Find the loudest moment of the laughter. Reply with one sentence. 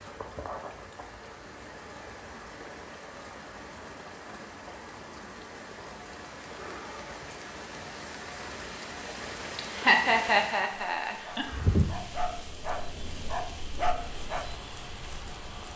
The volume of the laughter peaks at 10 seconds.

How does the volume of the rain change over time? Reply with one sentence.
The volume of the rain goes up, then down.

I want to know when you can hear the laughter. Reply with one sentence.
You can hear the laughter from 9.6 to 11.4 s.